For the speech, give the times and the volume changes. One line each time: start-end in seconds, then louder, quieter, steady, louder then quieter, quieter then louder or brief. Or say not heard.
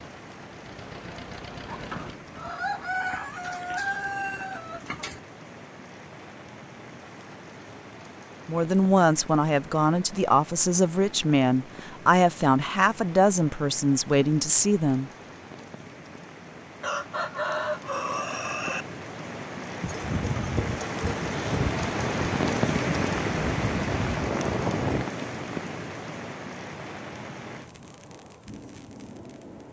8.4-15.1 steady.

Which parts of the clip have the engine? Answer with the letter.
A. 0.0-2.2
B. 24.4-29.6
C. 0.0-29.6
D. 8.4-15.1
A.